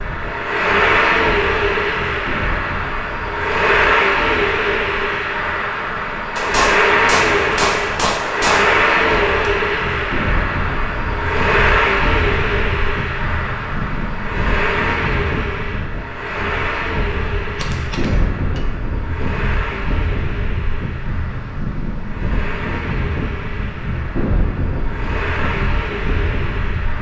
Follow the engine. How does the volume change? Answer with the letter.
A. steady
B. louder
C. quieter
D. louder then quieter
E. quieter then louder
C.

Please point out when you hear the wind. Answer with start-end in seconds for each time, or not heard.
0.0-26.9.